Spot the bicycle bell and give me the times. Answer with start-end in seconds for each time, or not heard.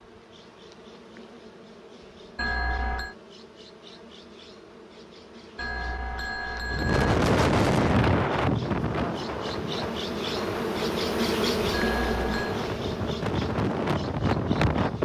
2.4-3.1, 5.5-7.2, 11.7-12.6.